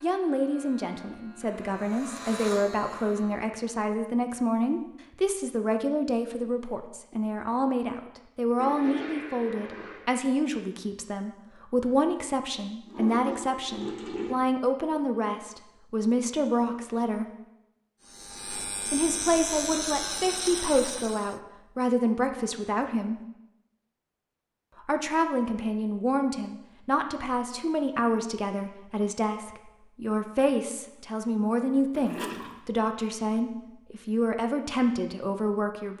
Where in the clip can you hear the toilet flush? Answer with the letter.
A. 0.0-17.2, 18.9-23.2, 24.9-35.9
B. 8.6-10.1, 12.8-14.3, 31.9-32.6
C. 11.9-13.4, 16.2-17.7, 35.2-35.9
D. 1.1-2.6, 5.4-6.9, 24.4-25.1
B.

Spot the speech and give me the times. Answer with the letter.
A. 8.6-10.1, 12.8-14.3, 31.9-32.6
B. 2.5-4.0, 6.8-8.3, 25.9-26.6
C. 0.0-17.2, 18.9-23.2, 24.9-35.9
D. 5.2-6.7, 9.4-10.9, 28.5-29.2
C.